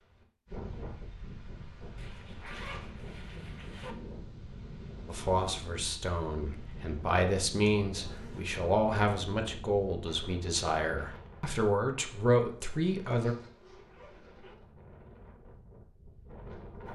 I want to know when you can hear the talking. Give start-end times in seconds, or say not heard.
5.0-13.3.